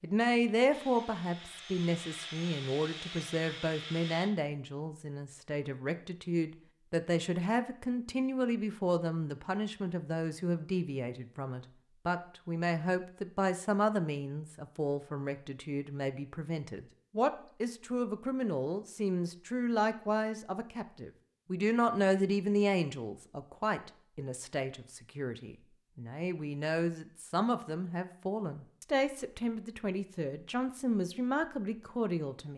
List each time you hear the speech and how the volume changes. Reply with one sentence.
You can hear the speech from 0.0 to 32.5 s, at a steady volume.